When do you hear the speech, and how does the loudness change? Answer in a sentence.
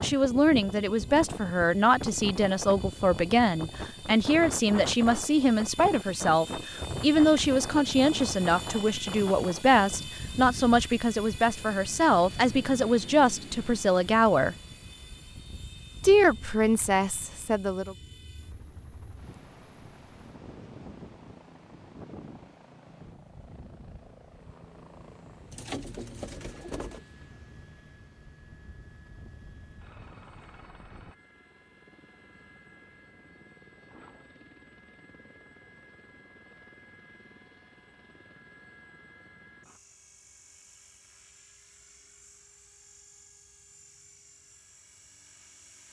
You can hear the speech from 0.0 to 14.6 s, at a steady volume; and briefly from 16.0 to 17.9 s.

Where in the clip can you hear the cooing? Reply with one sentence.
The cooing can be heard from 25.5 to 27.0 s.